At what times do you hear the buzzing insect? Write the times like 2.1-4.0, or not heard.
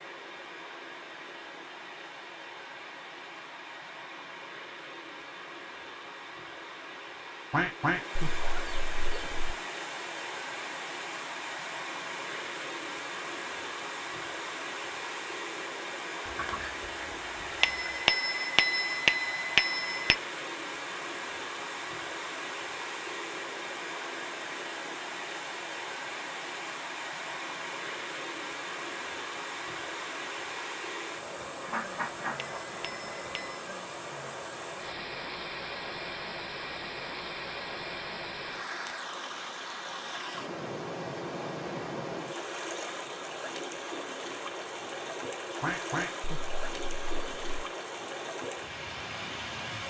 not heard.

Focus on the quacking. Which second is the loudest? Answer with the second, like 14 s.
8 s.